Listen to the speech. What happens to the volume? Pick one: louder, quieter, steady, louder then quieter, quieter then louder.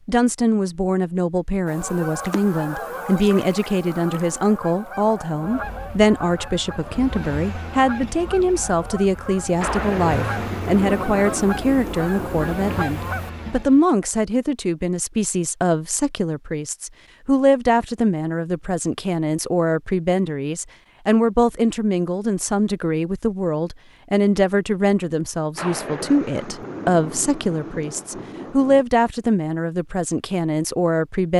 steady.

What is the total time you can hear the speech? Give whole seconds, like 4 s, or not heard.
31 s.